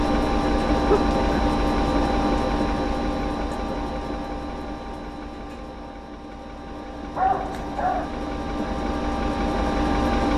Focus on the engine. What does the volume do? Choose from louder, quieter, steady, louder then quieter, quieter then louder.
quieter then louder.